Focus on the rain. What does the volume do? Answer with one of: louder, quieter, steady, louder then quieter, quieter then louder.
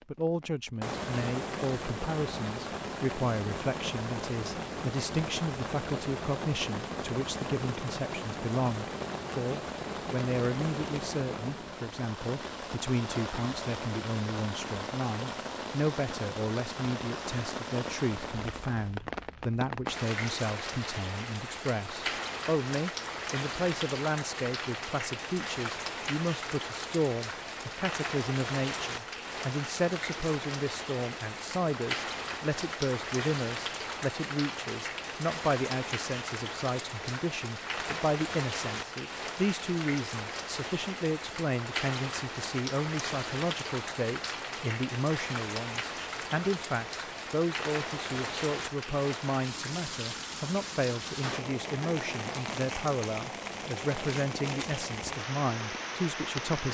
steady.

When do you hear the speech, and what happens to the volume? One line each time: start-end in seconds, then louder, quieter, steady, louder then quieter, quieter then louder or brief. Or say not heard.
0.1-56.6 steady.